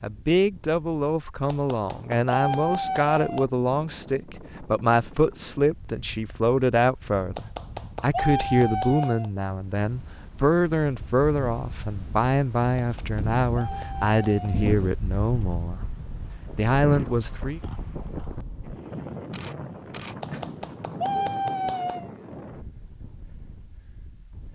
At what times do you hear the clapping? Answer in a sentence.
The clapping can be heard from 1.4 to 3.5 s, from 7.3 to 9.3 s, from 12.8 to 14.8 s and from 20.2 to 22.1 s.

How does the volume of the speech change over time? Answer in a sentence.
The volume of the speech stays about the same.